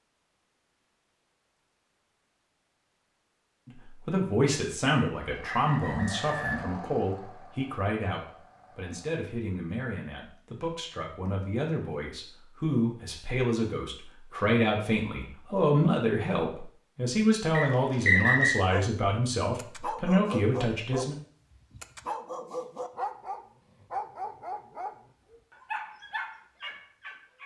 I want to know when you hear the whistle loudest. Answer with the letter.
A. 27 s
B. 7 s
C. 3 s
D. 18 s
D.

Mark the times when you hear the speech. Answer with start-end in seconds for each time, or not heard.
3.6-21.1.